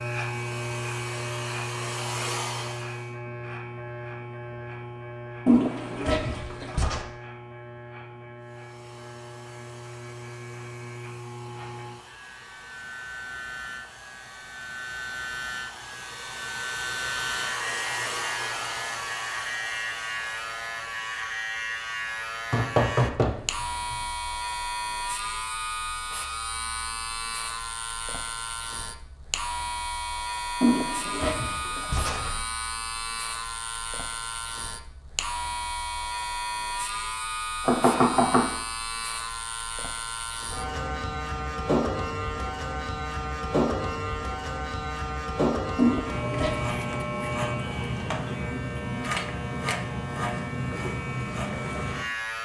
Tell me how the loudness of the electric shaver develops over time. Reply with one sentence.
The loudness of the electric shaver goes up.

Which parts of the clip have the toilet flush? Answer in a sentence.
You can hear the toilet flush from 5.5 to 7.0 s, from 30.6 to 32.4 s and from 45.8 to 46.8 s.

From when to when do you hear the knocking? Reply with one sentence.
You can hear the knocking from 22.5 to 23.9 s and from 37.6 to 38.5 s.